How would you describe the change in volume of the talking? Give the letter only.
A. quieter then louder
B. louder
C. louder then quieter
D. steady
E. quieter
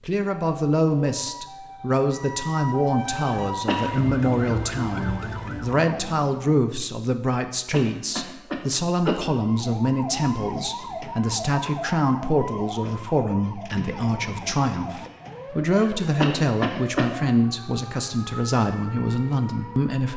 D.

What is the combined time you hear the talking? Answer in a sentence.
The talking can be heard for 20 seconds in total.